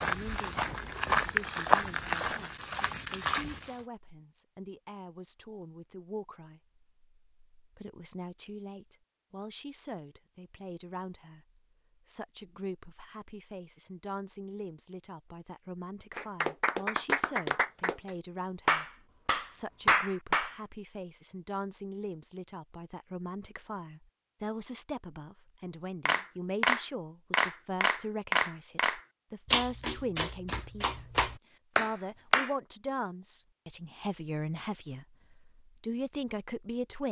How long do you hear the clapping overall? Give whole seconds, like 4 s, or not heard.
11 s.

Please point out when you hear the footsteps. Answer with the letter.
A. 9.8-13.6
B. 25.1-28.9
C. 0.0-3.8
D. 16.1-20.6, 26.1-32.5
C.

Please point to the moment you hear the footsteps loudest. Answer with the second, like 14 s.
2 s.